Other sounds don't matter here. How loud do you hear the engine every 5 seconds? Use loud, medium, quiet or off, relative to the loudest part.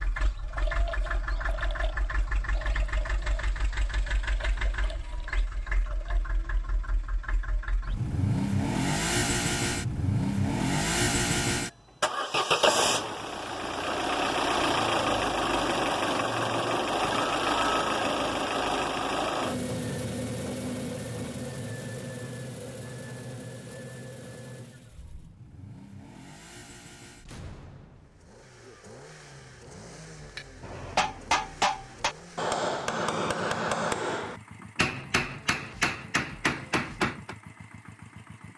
medium, medium, loud, loud, medium, quiet, quiet, quiet.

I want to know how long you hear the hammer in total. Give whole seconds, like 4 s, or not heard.
7 s.